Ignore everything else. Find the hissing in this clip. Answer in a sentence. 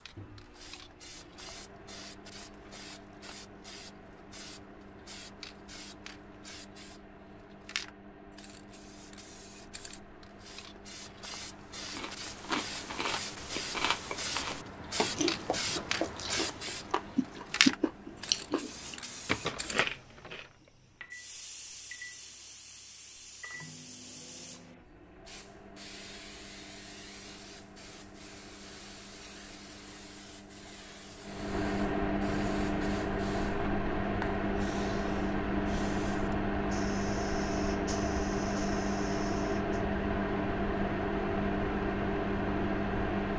You can hear the hissing from 0.0 to 39.9 s.